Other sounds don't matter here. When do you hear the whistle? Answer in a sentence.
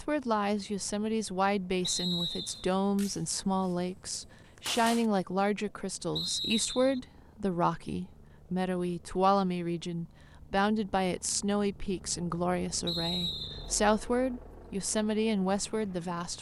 You can hear the whistle from 1.8 to 2.7 s, from 6.2 to 7.0 s and from 12.8 to 13.7 s.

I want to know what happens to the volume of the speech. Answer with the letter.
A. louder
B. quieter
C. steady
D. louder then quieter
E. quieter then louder
C.